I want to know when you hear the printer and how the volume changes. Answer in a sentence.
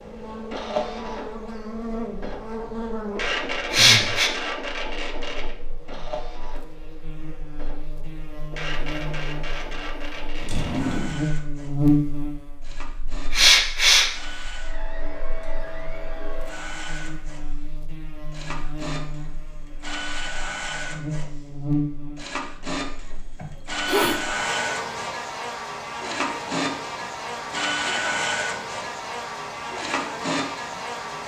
You can hear the printer from 0.0 to 31.2 s, getting quieter then louder.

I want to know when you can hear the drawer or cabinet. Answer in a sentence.
You can hear the drawer or cabinet from 10.4 to 11.2 s.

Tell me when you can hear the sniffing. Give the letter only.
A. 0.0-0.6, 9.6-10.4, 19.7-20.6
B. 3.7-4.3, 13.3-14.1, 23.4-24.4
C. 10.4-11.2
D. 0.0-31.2
B.